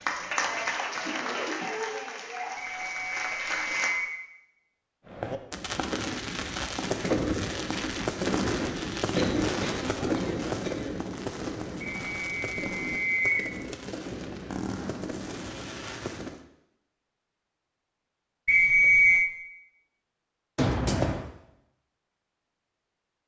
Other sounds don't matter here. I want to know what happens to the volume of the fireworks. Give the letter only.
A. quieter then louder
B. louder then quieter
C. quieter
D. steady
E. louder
C.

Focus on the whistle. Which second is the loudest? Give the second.
19 s.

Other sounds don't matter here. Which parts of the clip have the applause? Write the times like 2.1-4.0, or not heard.
0.0-4.0.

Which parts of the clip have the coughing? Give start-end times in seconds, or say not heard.
0.4-2.6, 9.2-10.9, 20.6-21.2.